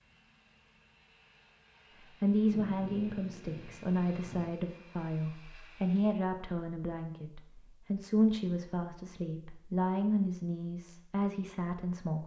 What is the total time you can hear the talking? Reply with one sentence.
The talking can be heard for 10 seconds in total.